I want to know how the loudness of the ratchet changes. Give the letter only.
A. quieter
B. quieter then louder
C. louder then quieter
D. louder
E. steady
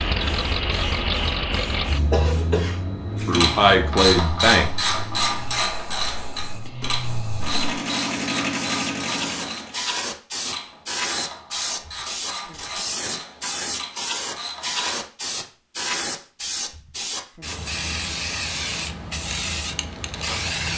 A.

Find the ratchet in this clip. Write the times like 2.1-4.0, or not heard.
3.3-15.1.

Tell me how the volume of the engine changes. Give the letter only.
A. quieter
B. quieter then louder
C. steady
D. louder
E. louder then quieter
B.